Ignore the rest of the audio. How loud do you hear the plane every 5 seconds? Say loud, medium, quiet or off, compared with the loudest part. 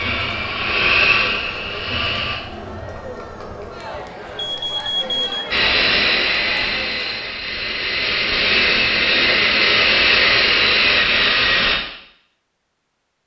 medium, loud, loud.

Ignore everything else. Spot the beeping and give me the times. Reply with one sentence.
You can hear the beeping from 4.3 to 5.5 s.